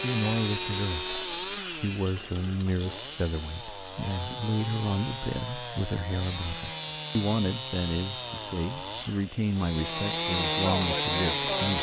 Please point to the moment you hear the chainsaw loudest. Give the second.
11 s.